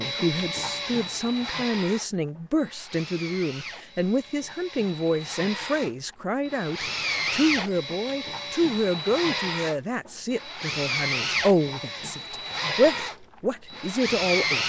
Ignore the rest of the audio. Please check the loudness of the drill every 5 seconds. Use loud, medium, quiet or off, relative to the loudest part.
medium, loud, loud.